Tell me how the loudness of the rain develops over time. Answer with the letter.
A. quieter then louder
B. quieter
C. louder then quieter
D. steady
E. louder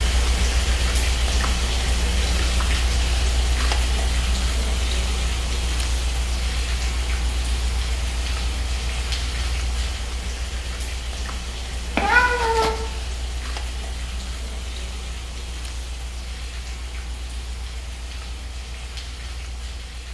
B.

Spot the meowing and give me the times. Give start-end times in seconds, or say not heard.
11.9-12.8.